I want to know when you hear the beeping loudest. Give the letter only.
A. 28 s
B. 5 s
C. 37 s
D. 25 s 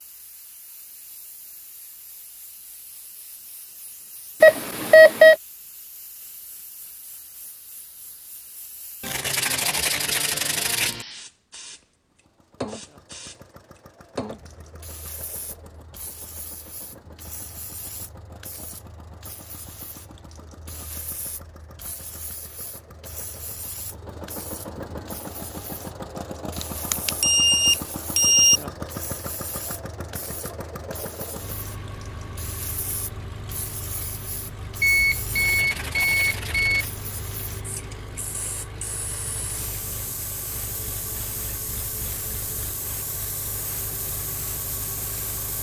B.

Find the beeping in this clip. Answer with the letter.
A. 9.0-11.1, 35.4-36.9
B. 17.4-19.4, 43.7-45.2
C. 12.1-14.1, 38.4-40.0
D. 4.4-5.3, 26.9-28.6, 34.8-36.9
D.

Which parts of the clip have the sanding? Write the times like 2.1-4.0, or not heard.
9.0-11.1, 35.4-36.9.